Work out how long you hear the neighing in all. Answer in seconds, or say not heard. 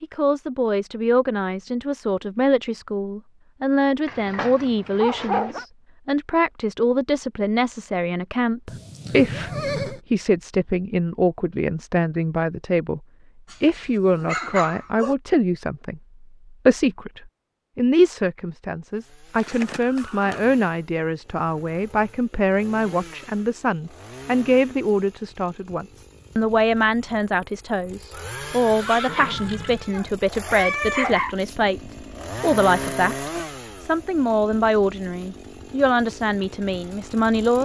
4 s.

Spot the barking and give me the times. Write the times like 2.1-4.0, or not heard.
4.0-5.7, 13.5-15.2, 28.7-31.4.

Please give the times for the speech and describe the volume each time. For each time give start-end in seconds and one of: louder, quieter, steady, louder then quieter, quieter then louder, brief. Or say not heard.
0.0-13.0 steady
13.6-37.6 steady.